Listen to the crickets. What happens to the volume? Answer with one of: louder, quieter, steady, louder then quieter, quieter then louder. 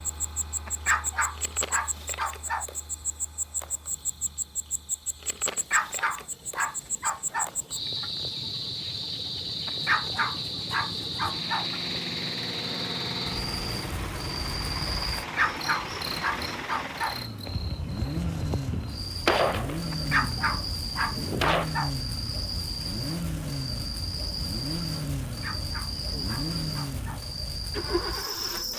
steady.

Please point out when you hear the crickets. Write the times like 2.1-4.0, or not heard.
0.0-28.7.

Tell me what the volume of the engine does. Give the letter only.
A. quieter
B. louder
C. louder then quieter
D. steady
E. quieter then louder
B.